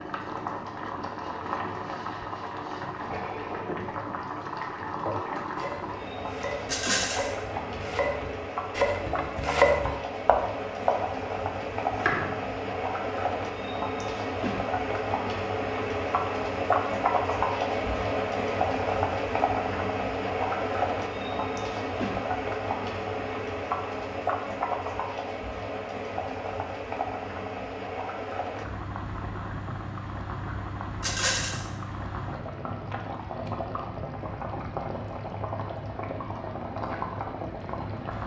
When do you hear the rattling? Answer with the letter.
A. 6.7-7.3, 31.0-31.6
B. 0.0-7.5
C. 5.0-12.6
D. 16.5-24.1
A.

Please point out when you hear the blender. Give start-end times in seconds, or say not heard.
not heard.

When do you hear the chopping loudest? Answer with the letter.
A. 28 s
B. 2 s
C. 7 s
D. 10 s
D.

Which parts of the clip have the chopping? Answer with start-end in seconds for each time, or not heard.
5.0-12.6.